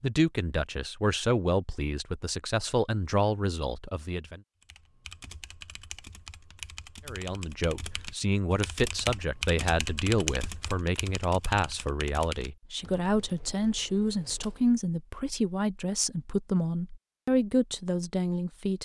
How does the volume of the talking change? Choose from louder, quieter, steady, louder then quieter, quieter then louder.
steady.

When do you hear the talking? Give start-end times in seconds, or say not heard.
0.0-4.4, 7.0-18.7.